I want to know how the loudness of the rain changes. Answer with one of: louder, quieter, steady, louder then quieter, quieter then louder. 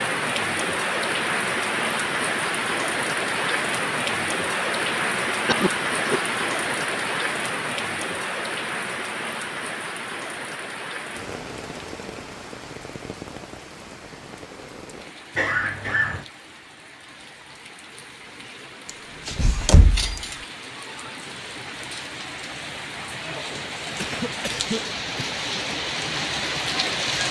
quieter then louder.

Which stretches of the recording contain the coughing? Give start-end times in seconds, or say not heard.
5.5-6.2, 15.3-16.2, 23.9-25.6.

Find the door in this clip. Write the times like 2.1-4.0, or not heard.
18.9-20.4.